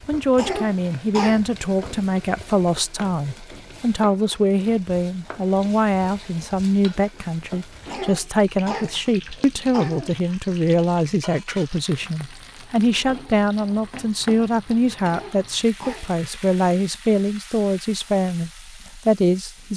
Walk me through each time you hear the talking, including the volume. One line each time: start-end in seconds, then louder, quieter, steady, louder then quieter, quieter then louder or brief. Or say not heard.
0.1-19.7 steady.